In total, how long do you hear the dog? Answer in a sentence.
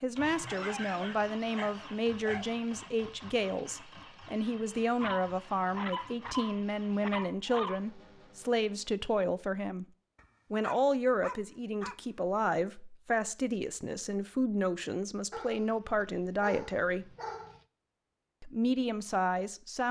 You can hear the dog for 9 seconds altogether.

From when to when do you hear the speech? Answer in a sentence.
The speech can be heard from 0.0 to 9.8 s, from 10.5 to 17.1 s and from 18.4 to 19.8 s.